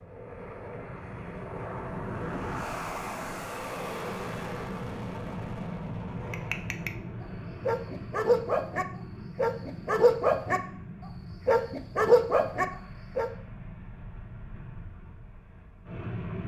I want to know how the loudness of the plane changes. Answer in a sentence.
The loudness of the plane goes down.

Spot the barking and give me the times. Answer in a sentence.
You can hear the barking from 6.2 to 6.9 s, from 7.6 to 10.6 s and from 11.4 to 13.3 s.